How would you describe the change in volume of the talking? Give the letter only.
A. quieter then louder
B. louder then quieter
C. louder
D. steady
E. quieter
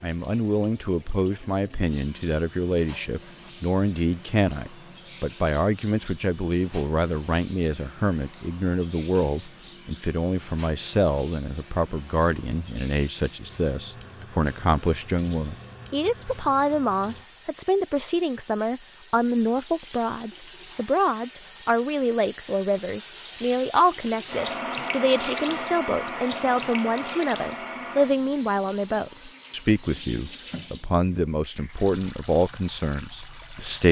D.